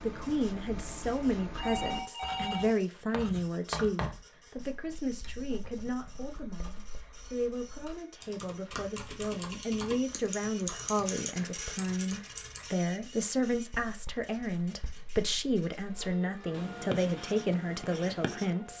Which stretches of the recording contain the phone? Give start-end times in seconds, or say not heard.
1.6-3.2.